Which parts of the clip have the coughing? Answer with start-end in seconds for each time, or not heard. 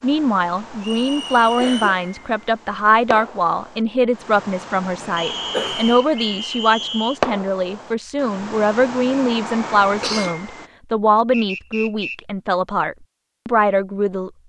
1.6-2.4, 5.0-6.5, 10.0-10.4.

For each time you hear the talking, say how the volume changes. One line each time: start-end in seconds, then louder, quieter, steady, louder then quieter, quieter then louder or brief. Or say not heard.
0.0-14.3 steady.